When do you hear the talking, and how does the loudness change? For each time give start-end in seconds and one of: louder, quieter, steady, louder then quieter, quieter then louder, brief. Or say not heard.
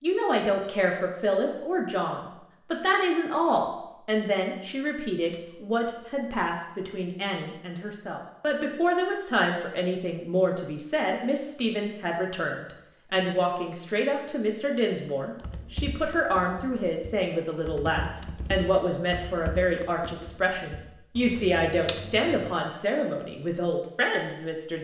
0.0-24.7 steady.